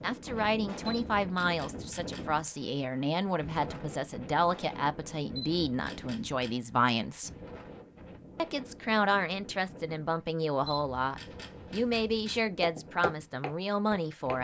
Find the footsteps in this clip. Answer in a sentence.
The footsteps can be heard from 12.6 to 14.3 s.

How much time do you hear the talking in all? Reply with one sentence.
The talking can be heard for 13 seconds in total.